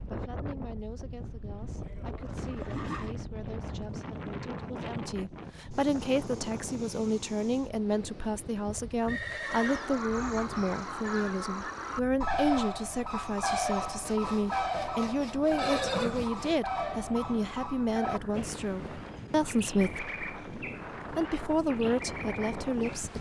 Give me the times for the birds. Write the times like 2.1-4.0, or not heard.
9.4-22.9.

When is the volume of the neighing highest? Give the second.
16 s.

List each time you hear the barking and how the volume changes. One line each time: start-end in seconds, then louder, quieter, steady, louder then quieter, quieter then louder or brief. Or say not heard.
not heard.